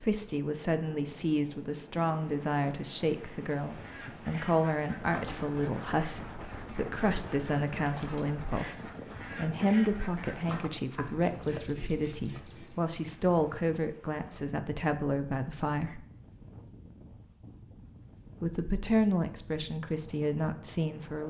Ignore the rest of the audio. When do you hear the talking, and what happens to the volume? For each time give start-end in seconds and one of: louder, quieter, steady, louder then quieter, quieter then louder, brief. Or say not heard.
0.0-16.0 steady
18.4-21.2 brief.